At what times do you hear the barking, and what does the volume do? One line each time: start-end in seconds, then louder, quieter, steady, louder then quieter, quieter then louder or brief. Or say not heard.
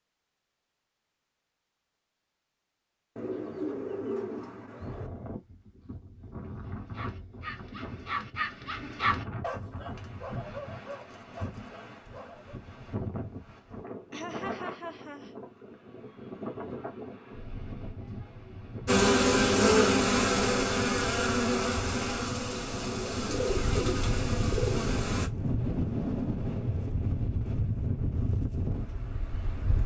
6.7-12.6 louder then quieter.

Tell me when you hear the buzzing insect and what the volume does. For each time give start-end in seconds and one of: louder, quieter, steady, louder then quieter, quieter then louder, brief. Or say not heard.
18.9-25.3 quieter.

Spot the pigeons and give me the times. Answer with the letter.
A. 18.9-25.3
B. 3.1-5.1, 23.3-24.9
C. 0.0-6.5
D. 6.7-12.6
B.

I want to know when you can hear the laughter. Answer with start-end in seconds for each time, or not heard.
14.1-15.3.